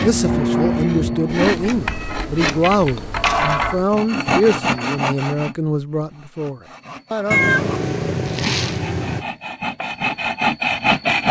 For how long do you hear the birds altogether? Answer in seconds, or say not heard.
not heard.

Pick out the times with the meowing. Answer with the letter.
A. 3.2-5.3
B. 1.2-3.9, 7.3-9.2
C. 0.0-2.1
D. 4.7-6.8
B.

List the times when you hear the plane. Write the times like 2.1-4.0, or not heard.
0.0-2.1.